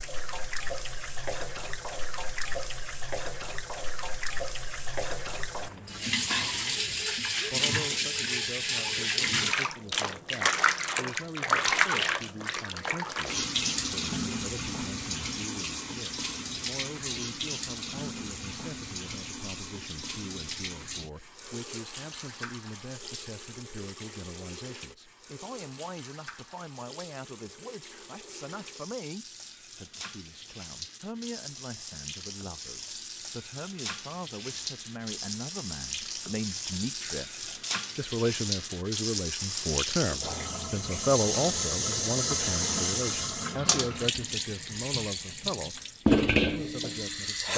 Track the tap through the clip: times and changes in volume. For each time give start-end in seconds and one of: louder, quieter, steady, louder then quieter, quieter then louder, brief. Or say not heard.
0.0-47.5 quieter then louder.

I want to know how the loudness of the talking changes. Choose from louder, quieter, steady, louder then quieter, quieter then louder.
louder.